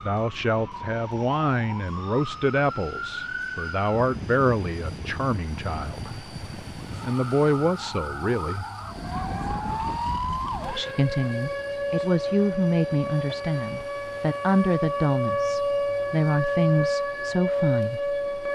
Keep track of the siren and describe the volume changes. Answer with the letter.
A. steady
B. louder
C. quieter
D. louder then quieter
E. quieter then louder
B.